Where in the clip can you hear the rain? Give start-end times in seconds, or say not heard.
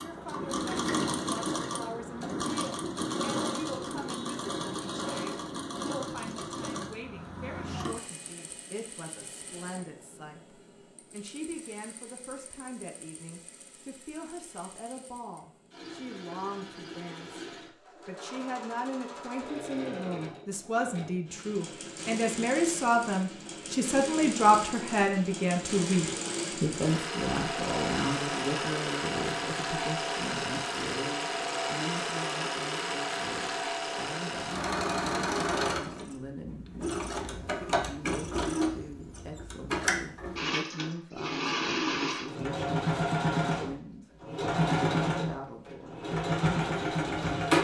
not heard.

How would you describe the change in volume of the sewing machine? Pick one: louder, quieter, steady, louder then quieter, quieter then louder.
quieter then louder.